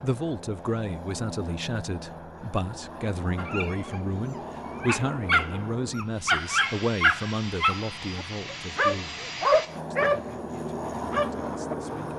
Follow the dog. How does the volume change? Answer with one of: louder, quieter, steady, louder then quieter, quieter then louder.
louder.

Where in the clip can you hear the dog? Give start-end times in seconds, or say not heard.
3.4-11.8.